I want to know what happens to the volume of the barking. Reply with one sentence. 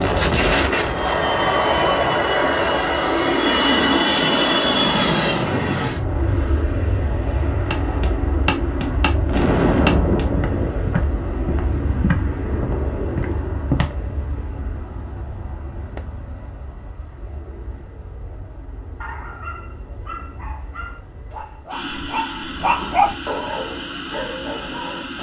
The loudness of the barking goes up, then down.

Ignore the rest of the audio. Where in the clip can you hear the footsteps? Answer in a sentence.
You can hear the footsteps from 7.7 to 13.9 s.